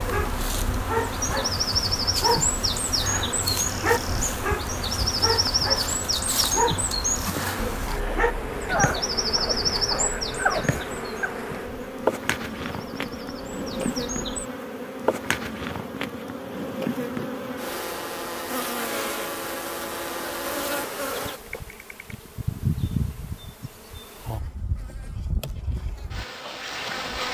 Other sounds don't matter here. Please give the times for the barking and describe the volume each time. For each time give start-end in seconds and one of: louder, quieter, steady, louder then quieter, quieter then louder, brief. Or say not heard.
0.1-11.3 steady.